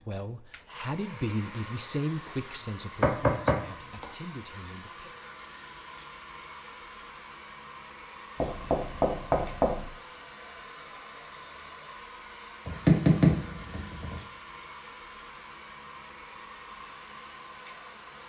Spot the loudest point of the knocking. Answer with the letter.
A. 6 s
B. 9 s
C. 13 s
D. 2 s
C.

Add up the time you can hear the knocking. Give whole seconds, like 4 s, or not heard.
4 s.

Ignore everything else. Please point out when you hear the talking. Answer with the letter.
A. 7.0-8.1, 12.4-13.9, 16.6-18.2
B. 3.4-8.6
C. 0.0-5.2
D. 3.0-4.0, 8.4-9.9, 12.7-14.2
C.